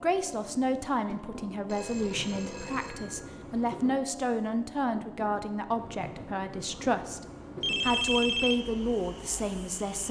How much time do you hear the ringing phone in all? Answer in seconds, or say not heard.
3 s.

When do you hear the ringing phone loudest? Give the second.
8 s.